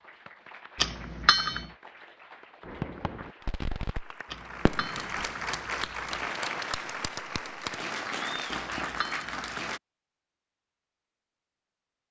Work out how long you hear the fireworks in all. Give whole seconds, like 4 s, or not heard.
6 s.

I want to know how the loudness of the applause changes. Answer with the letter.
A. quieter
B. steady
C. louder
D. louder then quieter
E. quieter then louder
C.